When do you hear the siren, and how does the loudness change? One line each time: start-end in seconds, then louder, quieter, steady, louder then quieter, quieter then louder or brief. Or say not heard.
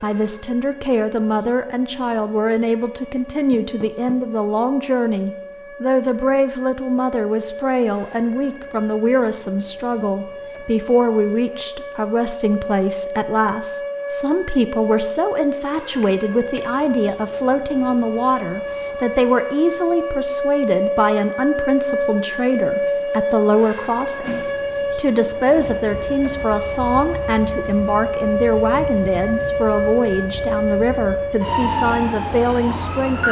0.0-33.2 louder.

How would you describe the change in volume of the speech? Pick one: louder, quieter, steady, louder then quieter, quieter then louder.
steady.